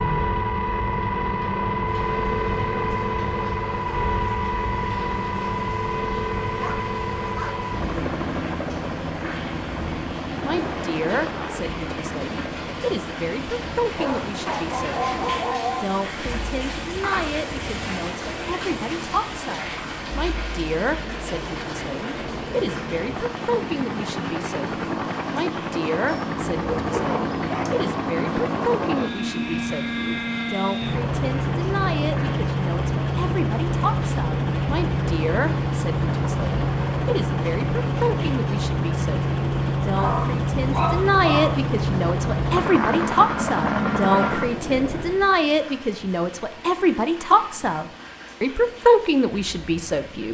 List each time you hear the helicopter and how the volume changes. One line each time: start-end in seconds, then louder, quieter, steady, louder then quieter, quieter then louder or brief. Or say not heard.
0.0-45.2 quieter then louder.